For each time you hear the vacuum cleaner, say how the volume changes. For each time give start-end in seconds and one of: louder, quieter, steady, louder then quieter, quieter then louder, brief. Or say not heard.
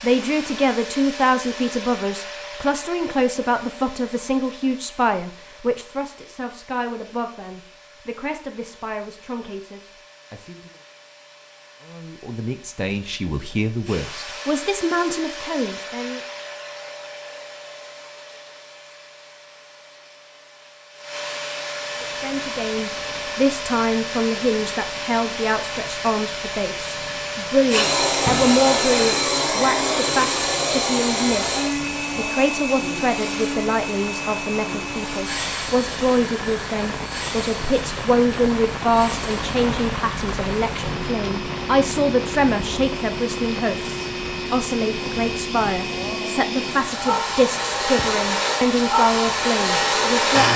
0.0-50.5 louder.